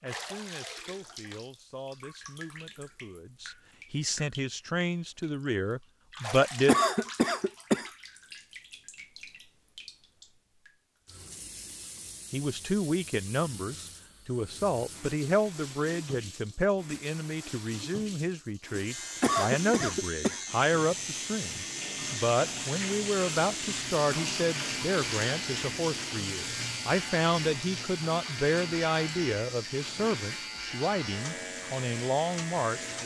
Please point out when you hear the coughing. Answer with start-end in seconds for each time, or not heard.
6.7-7.9, 19.2-20.4.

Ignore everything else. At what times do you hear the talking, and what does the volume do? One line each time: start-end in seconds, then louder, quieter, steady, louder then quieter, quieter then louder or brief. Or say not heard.
0.0-6.8 louder
12.3-33.0 steady.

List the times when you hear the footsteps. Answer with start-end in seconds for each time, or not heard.
not heard.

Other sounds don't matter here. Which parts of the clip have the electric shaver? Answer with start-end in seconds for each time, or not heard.
18.8-33.0.